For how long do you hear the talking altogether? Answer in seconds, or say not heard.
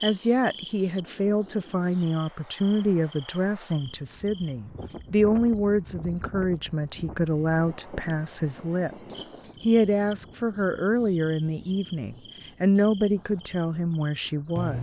15 s.